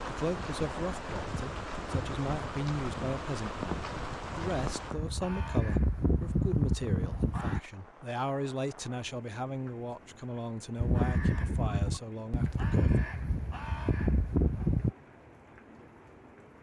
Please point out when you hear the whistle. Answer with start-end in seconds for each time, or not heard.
not heard.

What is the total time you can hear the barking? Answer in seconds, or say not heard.
not heard.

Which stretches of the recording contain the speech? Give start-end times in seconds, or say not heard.
0.1-13.1.